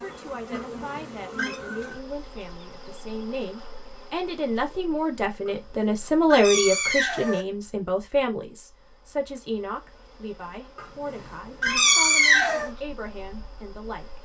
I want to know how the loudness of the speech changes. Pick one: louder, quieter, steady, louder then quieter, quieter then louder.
louder then quieter.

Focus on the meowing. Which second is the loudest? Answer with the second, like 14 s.
12 s.